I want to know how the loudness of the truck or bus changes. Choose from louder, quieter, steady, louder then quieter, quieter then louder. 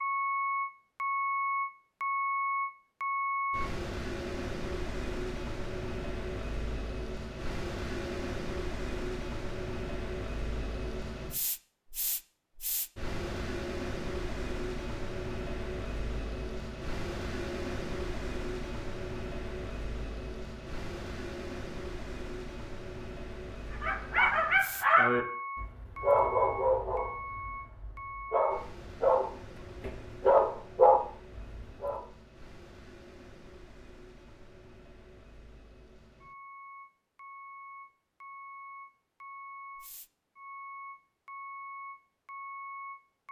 quieter.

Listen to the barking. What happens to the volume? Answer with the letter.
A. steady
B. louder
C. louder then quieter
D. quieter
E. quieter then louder
E.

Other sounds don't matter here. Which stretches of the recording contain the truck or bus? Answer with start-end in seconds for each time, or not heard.
0.0-43.2.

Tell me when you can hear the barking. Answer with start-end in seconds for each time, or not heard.
23.8-32.0.